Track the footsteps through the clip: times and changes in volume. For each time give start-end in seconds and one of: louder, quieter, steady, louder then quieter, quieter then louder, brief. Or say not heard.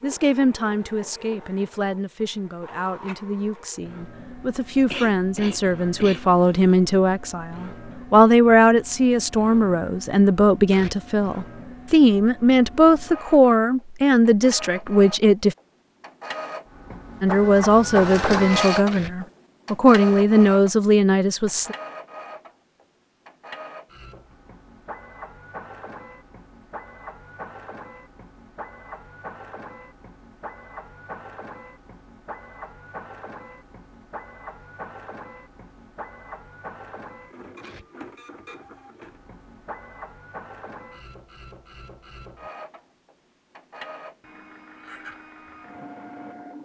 not heard.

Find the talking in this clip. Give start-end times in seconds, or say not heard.
0.0-15.6, 17.2-21.8.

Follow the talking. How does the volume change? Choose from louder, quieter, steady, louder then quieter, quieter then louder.
louder.